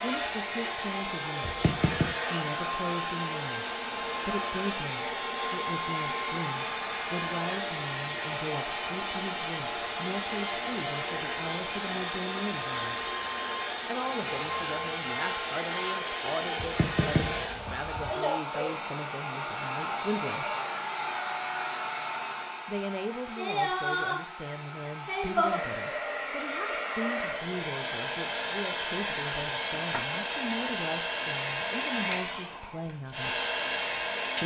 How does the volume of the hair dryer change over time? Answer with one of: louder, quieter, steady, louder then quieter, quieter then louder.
steady.